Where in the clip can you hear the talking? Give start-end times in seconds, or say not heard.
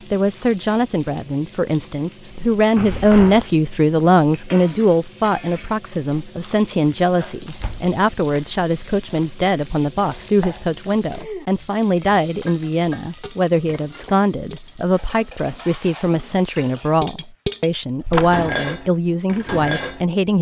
0.1-20.3.